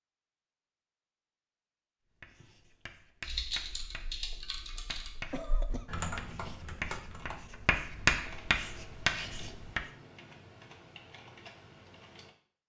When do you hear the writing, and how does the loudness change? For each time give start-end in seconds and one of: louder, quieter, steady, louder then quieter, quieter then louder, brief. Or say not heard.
2.2-9.8 louder.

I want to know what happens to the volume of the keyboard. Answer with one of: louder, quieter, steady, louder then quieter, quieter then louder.
quieter.